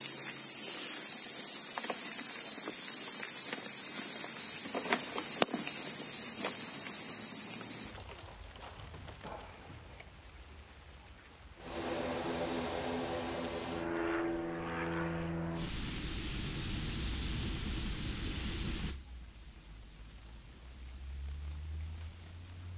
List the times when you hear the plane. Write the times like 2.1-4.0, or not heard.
11.6-22.7.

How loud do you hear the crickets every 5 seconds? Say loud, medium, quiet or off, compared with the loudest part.
loud, loud, quiet, quiet, quiet.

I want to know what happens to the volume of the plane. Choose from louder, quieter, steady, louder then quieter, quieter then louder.
quieter.